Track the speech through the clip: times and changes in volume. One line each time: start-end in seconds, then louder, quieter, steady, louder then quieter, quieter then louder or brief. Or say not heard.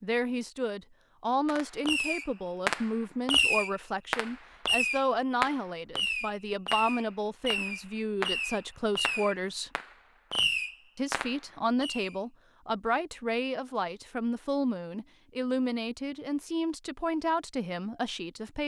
0.0-9.7 steady
10.9-18.6 steady.